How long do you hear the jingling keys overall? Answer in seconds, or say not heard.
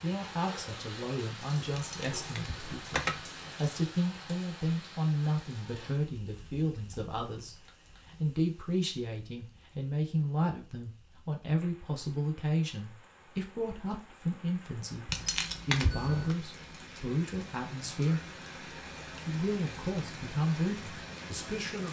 3 s.